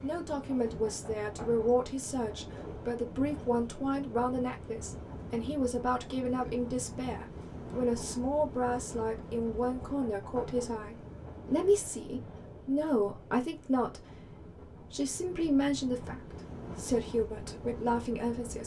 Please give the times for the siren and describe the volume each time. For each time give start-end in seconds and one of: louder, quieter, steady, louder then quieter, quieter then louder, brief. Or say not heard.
not heard.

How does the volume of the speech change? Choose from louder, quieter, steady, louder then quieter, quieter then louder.
steady.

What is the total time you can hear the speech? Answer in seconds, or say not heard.
18 s.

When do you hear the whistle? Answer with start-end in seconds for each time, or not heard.
not heard.